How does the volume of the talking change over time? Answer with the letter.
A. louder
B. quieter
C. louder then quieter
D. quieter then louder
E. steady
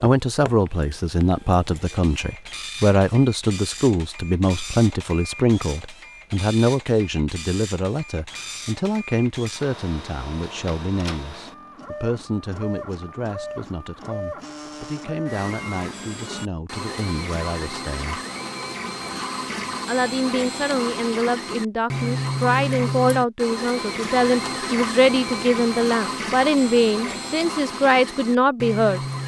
D.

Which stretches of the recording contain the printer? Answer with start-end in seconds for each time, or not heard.
0.2-29.2.